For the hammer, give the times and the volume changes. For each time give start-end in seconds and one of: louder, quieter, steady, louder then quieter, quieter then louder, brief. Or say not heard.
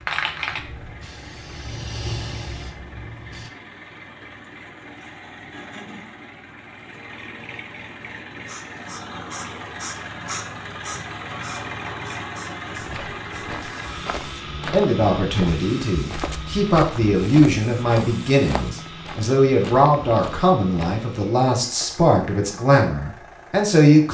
not heard.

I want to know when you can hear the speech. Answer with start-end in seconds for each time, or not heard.
14.7-24.0.